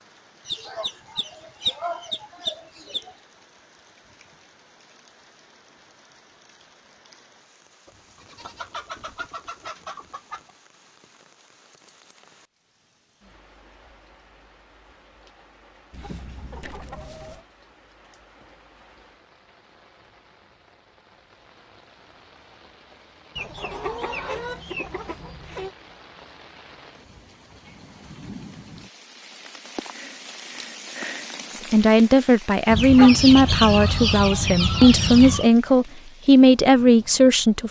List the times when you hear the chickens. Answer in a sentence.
You can hear the chickens from 0.5 to 3.1 s, from 7.8 to 10.5 s, from 15.9 to 17.4 s, from 23.4 to 25.7 s and from 32.7 to 35.5 s.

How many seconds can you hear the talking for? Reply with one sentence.
The talking can be heard for 6 seconds in total.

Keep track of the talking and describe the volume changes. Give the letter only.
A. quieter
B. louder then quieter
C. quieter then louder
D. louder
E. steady
E.